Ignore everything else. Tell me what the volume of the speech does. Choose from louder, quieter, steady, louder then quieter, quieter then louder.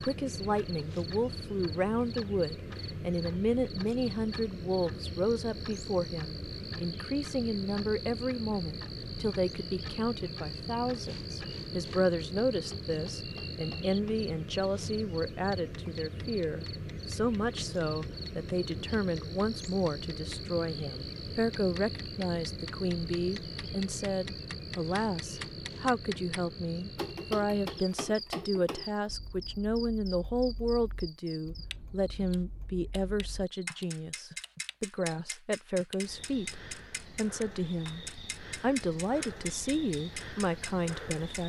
steady.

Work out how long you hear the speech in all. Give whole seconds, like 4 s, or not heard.
41 s.